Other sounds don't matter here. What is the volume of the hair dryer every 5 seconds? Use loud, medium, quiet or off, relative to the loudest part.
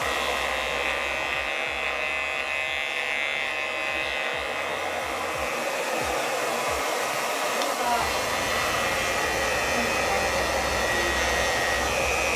medium, loud, loud.